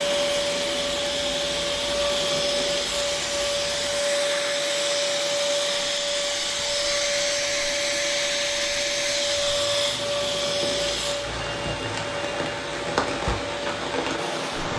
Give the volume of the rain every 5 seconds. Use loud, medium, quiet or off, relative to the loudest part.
medium, medium, loud.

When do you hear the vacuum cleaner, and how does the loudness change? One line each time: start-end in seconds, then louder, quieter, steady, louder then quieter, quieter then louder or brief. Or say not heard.
0.0-14.7 quieter.